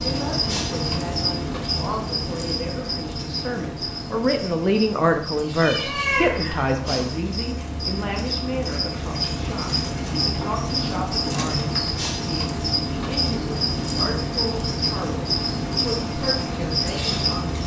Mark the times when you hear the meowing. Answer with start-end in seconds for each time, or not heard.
5.6-7.1.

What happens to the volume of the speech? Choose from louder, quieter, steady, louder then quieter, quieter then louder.
louder then quieter.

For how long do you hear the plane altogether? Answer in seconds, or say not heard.
not heard.